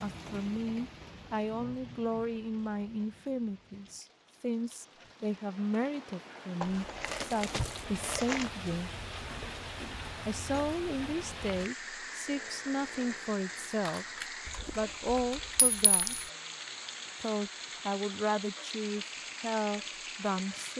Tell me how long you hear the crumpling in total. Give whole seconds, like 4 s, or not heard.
2 s.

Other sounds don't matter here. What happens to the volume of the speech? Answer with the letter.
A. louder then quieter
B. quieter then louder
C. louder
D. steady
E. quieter
D.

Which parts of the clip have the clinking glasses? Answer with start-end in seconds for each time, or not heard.
15.6-16.2.